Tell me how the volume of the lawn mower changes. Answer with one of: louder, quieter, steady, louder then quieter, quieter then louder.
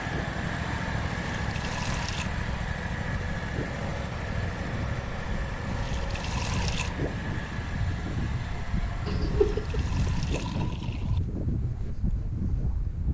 quieter.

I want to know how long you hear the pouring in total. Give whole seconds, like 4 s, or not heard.
4 s.